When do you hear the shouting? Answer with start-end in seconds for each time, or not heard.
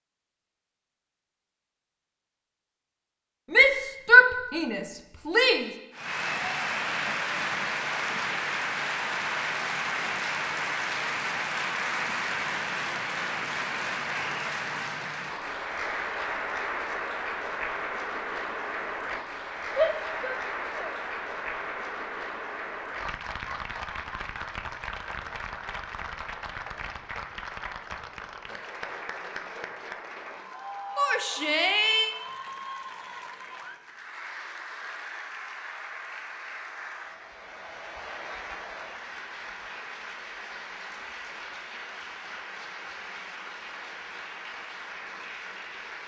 3.5-5.7, 19.8-20.9, 30.9-32.1.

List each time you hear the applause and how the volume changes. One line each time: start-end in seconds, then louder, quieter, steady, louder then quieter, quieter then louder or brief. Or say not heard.
5.9-46.0 quieter.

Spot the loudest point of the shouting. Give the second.
4 s.